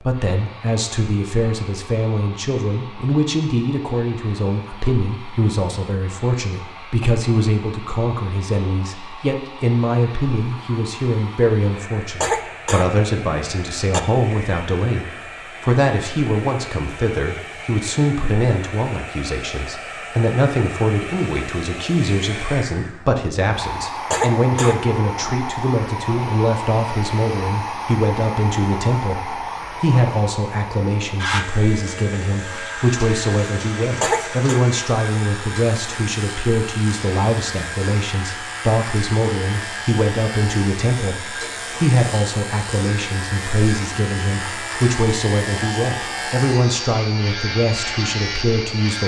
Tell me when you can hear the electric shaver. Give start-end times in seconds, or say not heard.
31.2-49.0.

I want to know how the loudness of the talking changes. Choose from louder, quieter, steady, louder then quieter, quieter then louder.
steady.